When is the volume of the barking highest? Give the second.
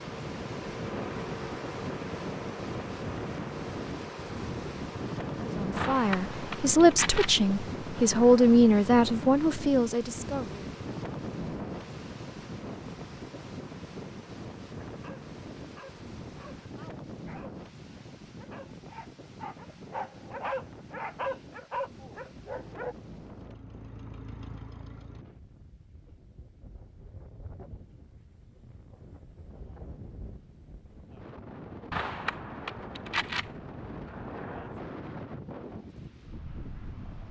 21 s.